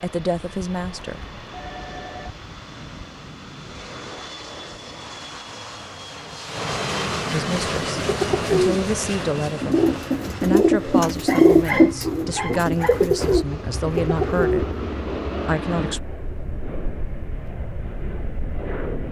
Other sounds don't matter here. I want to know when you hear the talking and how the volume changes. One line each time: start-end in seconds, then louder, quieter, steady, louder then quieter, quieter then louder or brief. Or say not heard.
0.0-1.2 brief
7.3-16.1 steady.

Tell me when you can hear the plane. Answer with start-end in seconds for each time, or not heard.
0.0-19.0.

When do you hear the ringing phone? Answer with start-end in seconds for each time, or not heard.
1.1-2.4.